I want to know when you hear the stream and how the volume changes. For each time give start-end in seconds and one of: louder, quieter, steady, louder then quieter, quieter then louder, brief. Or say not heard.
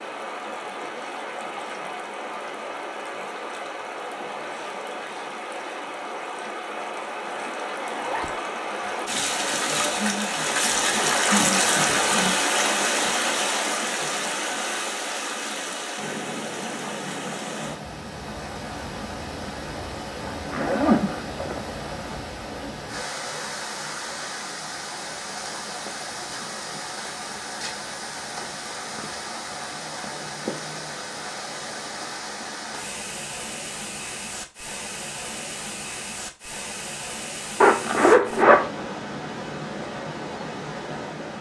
0.0-41.3 louder then quieter.